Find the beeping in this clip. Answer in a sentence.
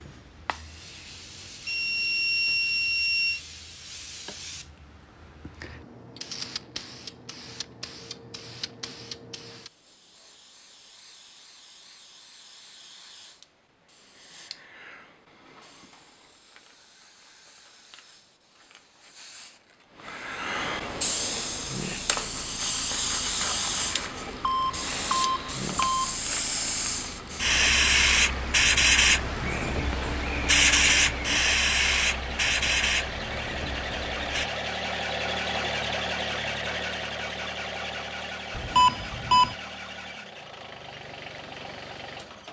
The beeping can be heard from 1.6 to 3.4 s, from 24.4 to 26.1 s and from 38.5 to 39.5 s.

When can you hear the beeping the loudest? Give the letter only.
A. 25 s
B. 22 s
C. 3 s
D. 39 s
D.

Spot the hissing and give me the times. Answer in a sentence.
The hissing can be heard from 0.0 to 34.5 s.